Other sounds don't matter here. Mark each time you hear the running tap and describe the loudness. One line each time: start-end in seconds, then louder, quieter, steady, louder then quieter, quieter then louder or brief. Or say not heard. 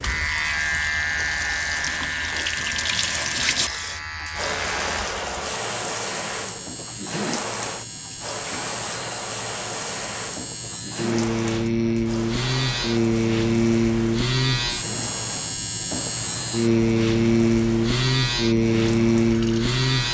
0.0-19.8 quieter.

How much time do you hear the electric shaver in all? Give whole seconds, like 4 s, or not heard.
20 s.